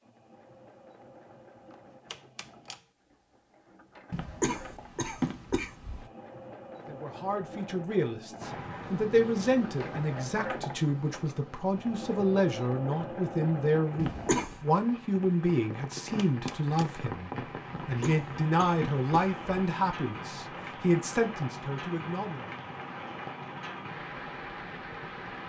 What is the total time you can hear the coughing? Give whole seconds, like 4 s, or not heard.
4 s.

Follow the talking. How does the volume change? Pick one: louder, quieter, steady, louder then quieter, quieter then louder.
steady.